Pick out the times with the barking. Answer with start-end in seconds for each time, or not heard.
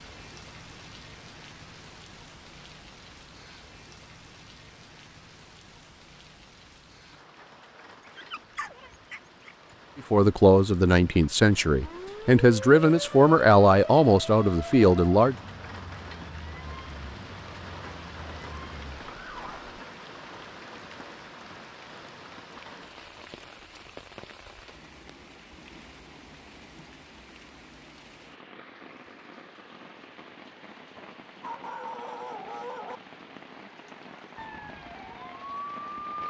8.1-9.8, 30.9-33.0.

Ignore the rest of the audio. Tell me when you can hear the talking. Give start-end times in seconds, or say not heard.
9.9-15.3.